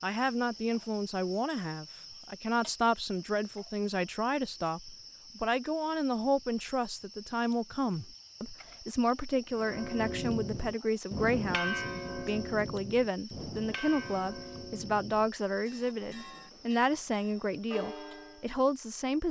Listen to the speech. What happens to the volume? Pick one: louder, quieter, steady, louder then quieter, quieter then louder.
steady.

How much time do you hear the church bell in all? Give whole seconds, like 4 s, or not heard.
9 s.